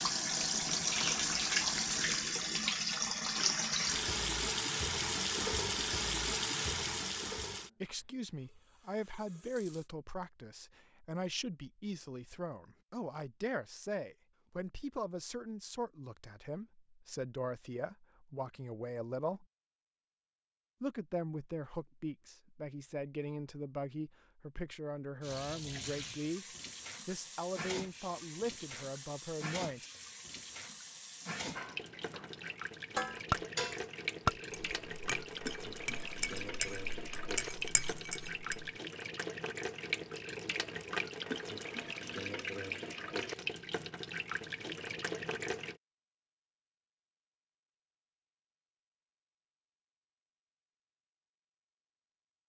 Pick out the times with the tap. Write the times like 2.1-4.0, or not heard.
0.0-9.9, 25.2-45.8.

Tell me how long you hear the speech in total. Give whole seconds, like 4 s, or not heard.
20 s.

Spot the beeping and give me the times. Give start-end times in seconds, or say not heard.
not heard.